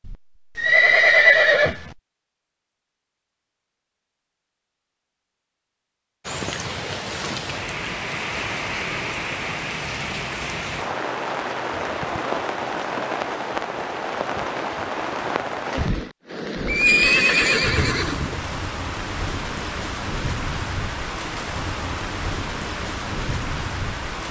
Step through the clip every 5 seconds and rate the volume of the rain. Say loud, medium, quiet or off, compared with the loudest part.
off, loud, loud, loud, loud.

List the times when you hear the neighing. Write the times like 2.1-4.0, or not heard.
0.1-1.9, 16.6-18.4.